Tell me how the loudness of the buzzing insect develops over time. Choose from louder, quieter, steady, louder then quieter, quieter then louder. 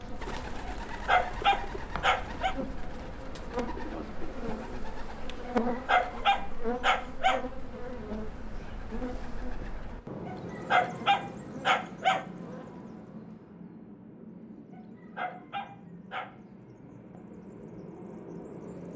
louder then quieter.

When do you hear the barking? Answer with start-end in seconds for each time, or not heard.
0.7-2.5, 5.5-7.4, 10.2-12.2, 14.7-16.3.